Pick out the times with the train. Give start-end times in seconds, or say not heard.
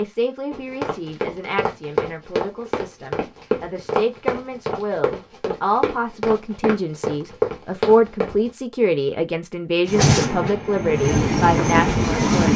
9.8-12.5.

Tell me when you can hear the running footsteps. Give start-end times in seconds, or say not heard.
0.5-8.5.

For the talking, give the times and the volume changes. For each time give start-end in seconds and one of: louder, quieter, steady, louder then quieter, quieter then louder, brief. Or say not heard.
0.0-12.5 louder.